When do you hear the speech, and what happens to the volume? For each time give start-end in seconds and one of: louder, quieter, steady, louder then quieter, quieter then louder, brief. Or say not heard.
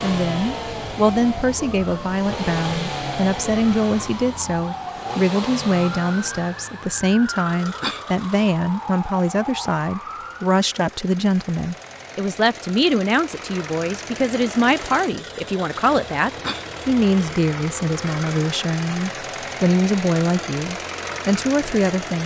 0.0-22.2 steady.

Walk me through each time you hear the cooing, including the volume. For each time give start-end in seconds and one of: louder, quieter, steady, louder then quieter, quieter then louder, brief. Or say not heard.
not heard.